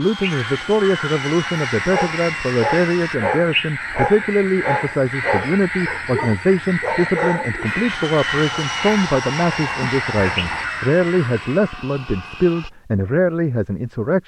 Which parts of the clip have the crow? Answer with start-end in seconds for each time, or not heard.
0.0-11.8.